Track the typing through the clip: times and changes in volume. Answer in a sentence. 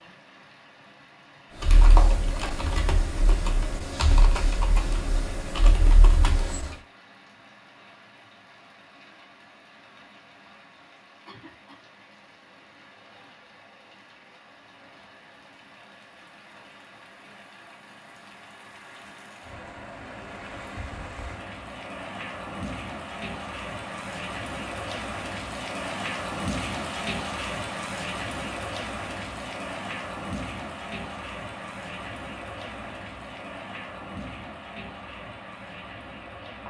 You can hear the typing from 1.6 to 6.8 s, at a steady volume.